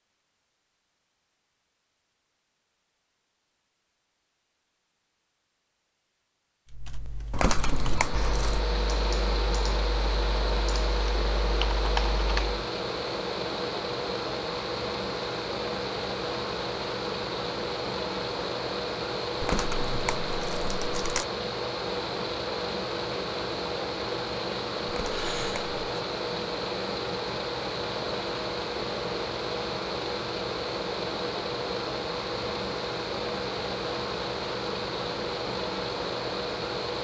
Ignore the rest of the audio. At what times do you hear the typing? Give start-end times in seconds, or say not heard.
6.7-12.6.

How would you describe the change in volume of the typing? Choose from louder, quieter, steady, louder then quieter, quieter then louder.
louder.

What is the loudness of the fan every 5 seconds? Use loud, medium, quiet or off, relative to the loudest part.
off, loud, loud, loud, loud, loud, loud, loud.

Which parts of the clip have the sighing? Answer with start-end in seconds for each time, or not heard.
25.1-26.0.